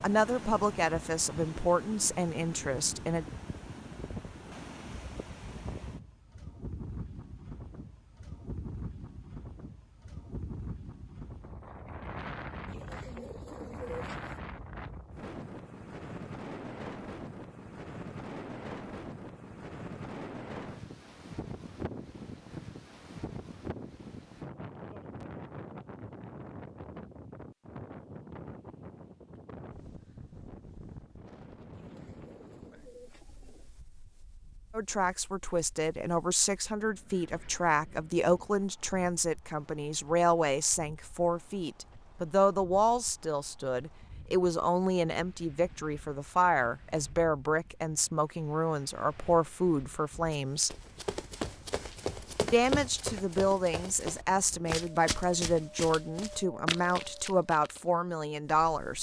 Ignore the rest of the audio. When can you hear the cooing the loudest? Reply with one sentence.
The loudest moment of the cooing is at 14 seconds.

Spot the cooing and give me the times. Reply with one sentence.
The cooing can be heard from 12.7 to 14.4 s and from 31.7 to 33.7 s.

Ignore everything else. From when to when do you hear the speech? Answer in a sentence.
The speech can be heard from 0.0 to 3.2 s, from 34.7 to 50.8 s and from 52.5 to 58.9 s.